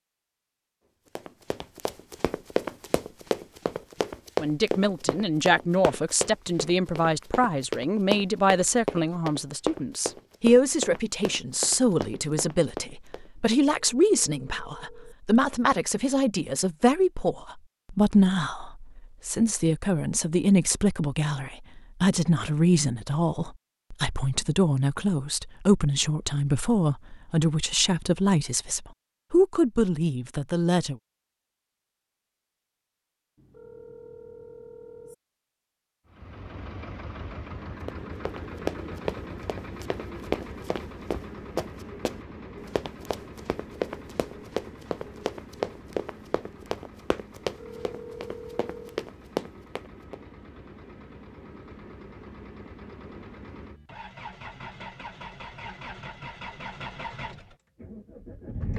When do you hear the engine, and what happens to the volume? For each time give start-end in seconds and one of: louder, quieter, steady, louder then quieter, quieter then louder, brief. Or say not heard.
36.0-58.7 quieter then louder.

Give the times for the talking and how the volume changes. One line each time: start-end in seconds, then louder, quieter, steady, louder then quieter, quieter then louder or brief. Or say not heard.
4.4-30.9 steady.